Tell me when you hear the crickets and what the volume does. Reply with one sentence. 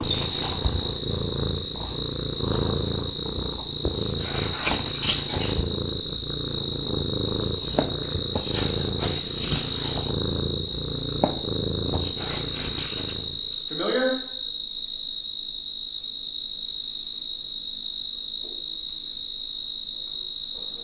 The crickets can be heard from 0.0 to 20.7 s, at a steady volume.